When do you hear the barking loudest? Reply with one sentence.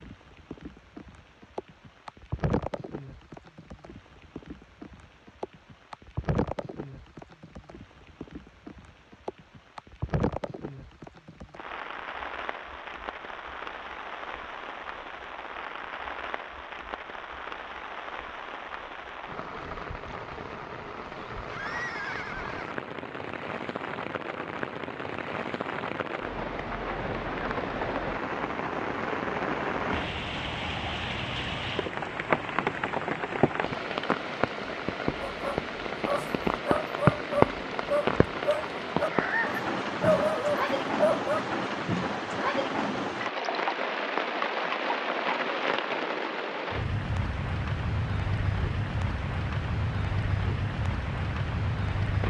The volume of the barking peaks at 40 seconds.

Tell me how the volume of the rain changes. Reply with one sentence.
The loudness of the rain goes up.